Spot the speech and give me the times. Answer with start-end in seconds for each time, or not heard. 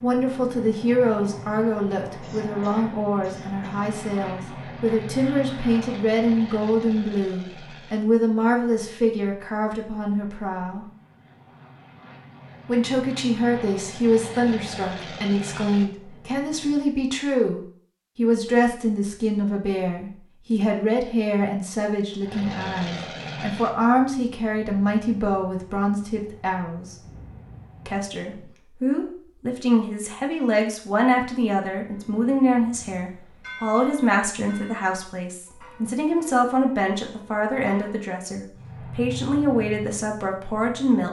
0.0-10.8, 12.7-26.9, 27.9-41.0.